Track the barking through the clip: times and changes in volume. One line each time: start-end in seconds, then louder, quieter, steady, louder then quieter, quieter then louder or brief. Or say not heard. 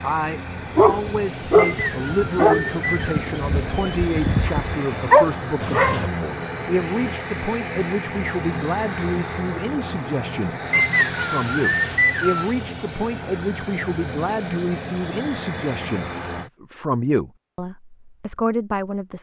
0.8-6.1 quieter then louder.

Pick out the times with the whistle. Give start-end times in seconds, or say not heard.
1.6-3.3, 10.7-12.5.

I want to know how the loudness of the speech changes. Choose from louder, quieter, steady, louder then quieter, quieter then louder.
steady.